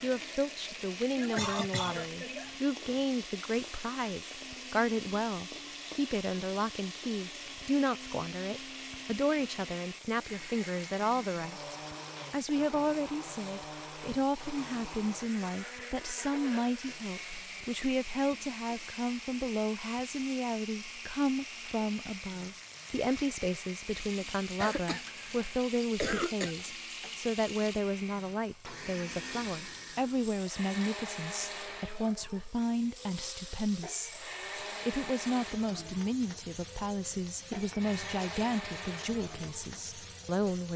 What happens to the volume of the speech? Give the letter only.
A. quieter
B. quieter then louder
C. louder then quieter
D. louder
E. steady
E.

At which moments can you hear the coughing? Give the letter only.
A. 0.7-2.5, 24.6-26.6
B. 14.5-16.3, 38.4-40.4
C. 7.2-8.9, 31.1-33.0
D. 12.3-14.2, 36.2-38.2
A.